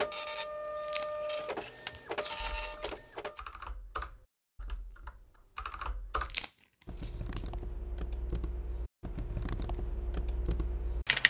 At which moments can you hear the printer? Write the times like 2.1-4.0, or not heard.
0.0-3.4.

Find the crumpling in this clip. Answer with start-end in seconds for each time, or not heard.
0.8-3.0, 6.2-7.5.